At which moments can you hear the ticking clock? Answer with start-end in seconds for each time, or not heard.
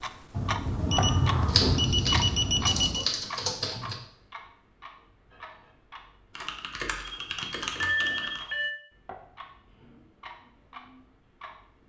0.0-11.8.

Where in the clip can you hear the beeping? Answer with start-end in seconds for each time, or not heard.
0.3-3.1, 7.0-8.8.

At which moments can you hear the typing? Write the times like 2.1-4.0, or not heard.
1.4-4.0, 6.3-8.4.